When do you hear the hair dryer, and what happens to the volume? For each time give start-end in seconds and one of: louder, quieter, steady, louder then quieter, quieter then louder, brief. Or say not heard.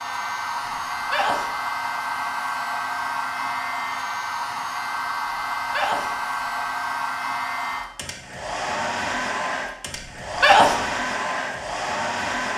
0.0-12.5 steady.